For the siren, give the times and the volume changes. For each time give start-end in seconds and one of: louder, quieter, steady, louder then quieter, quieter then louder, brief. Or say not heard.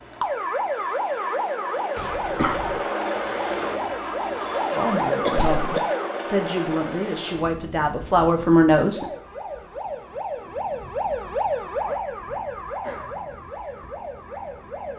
0.0-6.2 quieter then louder
8.8-14.9 louder then quieter.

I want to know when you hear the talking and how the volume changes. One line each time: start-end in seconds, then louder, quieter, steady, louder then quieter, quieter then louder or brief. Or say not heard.
4.7-9.1 louder.